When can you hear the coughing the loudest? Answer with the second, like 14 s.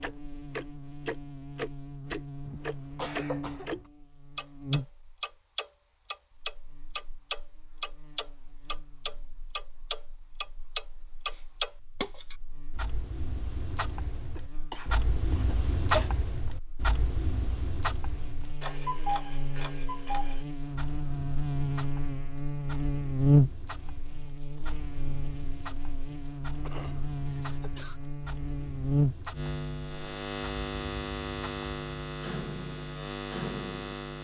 16 s.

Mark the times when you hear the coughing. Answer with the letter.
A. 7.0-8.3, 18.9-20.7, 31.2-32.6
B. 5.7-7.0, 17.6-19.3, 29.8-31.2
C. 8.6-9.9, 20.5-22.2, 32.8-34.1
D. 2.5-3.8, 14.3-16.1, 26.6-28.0
D.